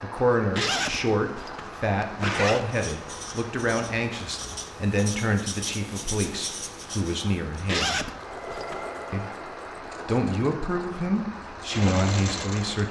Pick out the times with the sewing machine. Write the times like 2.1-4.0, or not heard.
8.2-12.8.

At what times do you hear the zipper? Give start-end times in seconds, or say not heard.
0.6-2.6, 7.7-8.8.